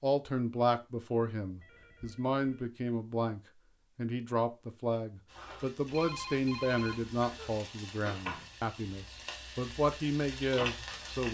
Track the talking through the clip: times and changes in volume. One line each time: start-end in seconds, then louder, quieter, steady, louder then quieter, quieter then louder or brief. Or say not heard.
0.0-11.2 steady.